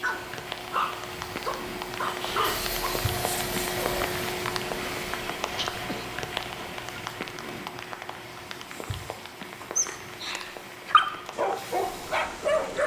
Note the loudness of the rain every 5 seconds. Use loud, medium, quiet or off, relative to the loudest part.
loud, loud, medium.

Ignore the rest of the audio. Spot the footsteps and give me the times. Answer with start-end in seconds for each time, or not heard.
not heard.